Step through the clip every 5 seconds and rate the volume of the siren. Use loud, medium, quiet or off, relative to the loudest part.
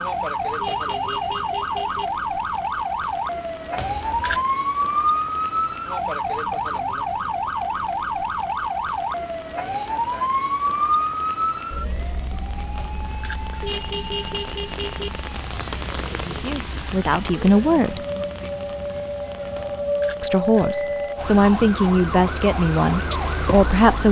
loud, loud, loud, medium, loud.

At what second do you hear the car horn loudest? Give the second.
14 s.